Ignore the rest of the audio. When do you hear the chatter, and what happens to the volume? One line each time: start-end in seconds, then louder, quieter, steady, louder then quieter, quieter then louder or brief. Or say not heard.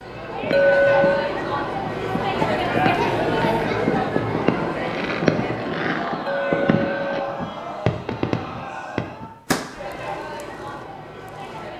0.0-11.7 quieter.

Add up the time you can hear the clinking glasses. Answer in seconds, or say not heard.
2 s.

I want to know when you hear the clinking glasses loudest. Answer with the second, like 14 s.
1 s.